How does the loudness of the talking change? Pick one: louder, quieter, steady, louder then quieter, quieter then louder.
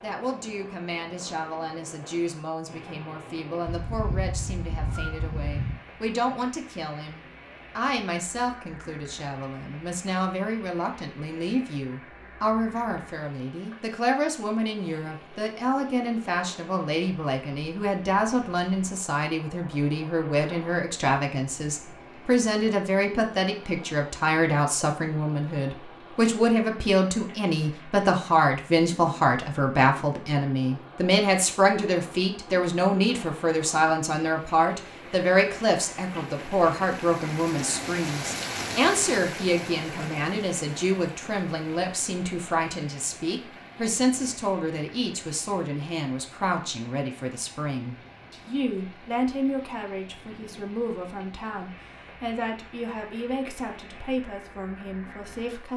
louder then quieter.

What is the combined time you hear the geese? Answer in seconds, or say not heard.
2 s.